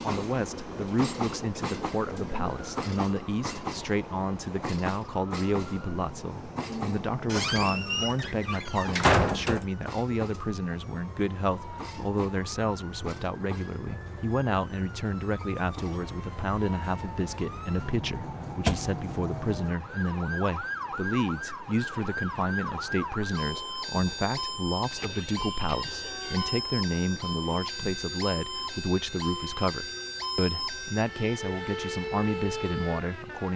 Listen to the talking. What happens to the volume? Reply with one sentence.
The volume of the talking stays about the same.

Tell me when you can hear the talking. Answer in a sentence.
The talking can be heard from 0.0 to 33.5 s.